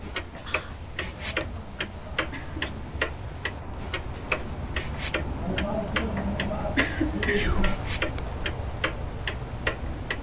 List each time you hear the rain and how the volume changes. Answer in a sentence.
The rain can be heard from 0.0 to 10.1 s, getting louder.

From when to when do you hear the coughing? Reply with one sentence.
The coughing can be heard from 0.9 to 2.8 s and from 5.4 to 7.8 s.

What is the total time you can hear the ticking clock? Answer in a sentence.
You can hear the ticking clock for 10 seconds altogether.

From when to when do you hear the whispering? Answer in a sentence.
The whispering can be heard from 0.4 to 0.9 s and from 7.3 to 7.8 s.